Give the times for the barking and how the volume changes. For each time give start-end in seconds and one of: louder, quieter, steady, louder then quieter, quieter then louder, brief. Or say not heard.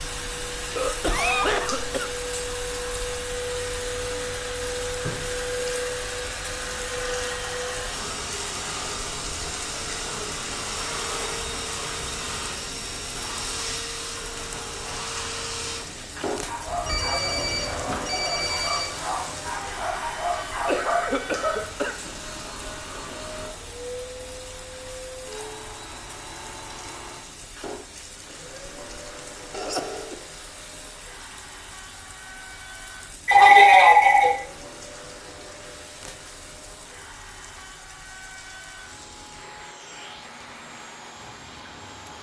16.4-21.8 louder.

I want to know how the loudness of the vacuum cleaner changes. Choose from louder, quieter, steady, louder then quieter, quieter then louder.
quieter.